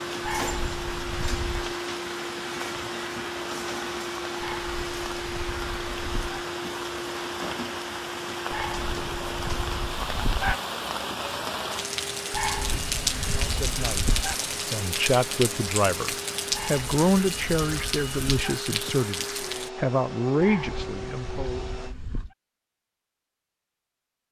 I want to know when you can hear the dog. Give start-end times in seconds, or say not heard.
0.2-1.8, 4.4-6.4, 8.5-10.6, 12.3-14.3, 16.5-18.6, 20.4-22.3.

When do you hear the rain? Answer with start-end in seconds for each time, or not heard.
0.0-19.7.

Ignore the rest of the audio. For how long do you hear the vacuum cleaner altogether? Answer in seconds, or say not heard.
22 s.